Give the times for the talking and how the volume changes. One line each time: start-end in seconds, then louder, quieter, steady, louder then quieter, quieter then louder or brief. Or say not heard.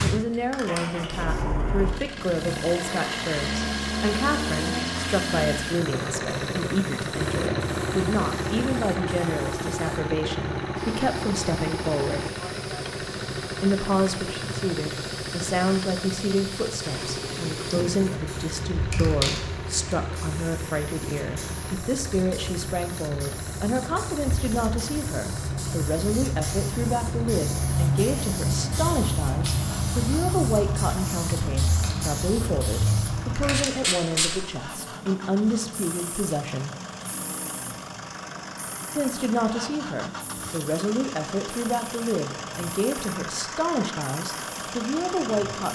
0.0-12.3 steady
13.6-36.7 steady
39.0-45.6 steady.